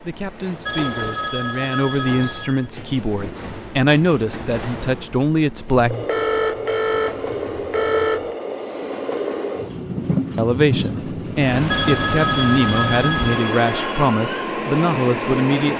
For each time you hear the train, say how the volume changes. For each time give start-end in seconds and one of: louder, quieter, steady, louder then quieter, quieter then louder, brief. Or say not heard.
0.0-15.7 louder.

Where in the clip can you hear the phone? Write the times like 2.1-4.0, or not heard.
0.7-2.6, 5.8-8.3, 11.7-14.1.